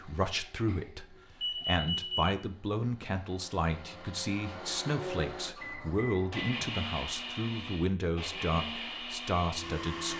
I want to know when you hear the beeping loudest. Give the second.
2 s.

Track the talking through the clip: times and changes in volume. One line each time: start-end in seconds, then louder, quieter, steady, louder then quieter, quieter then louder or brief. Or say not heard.
0.0-10.1 steady.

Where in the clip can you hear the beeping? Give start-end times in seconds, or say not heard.
0.7-2.5, 5.5-6.6.